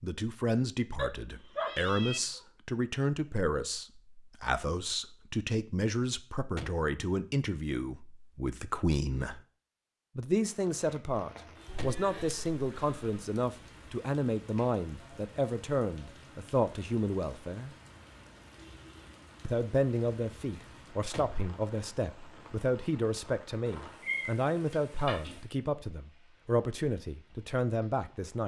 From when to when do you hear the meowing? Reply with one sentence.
You can hear the meowing from 0.9 to 2.4 s, from 11.7 to 13.2 s and from 24.0 to 25.4 s.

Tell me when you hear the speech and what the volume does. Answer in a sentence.
You can hear the speech from 0.0 to 9.4 s, at a steady volume; from 10.2 to 17.7 s, at a steady volume; and from 19.4 to 28.4 s, at a steady volume.